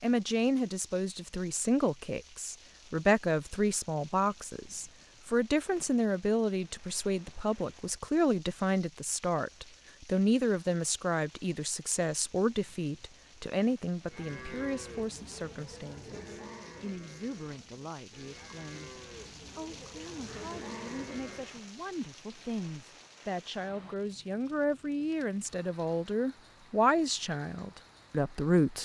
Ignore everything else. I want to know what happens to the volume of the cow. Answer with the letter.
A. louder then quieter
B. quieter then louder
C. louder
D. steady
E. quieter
B.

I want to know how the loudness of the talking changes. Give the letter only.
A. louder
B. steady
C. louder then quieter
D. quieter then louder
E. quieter
D.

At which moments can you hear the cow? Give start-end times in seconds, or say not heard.
14.0-21.6.